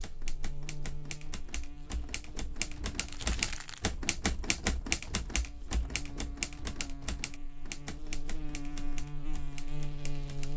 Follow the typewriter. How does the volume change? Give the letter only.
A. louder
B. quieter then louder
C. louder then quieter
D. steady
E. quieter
C.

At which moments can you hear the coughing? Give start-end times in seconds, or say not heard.
not heard.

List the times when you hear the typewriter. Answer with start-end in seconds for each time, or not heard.
0.0-10.5.